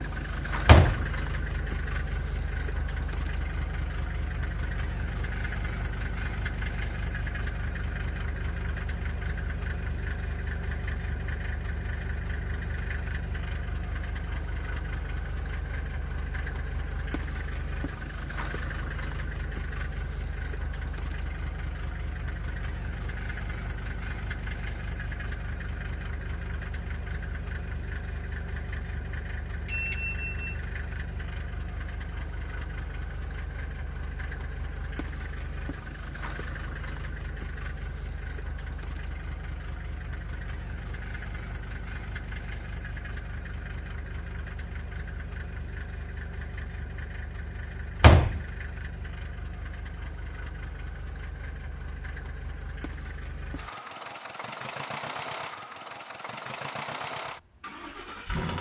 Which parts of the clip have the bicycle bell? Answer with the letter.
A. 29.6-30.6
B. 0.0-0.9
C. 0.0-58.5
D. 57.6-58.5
A.